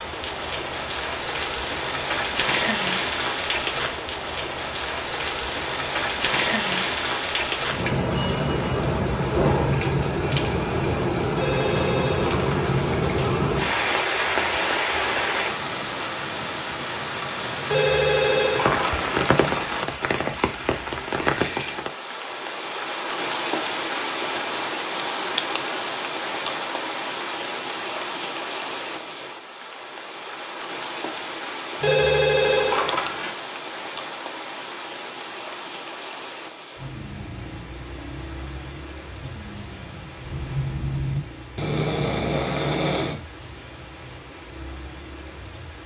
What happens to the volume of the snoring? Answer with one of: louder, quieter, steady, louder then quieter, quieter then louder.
louder.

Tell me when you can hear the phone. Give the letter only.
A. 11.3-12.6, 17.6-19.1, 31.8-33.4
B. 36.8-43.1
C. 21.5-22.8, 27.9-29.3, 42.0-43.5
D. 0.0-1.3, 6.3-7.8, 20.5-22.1
A.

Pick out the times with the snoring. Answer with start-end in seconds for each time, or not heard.
36.8-43.1.